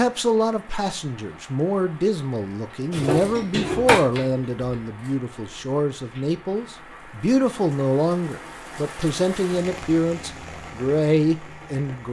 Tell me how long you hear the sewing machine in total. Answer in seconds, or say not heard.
2 s.